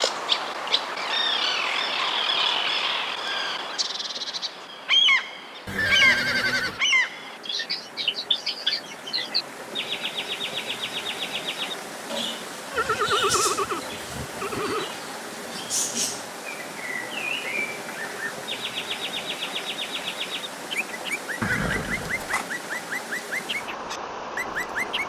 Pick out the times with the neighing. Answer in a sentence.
The neighing can be heard from 5.7 to 6.8 s, from 12.7 to 14.8 s and from 21.4 to 22.4 s.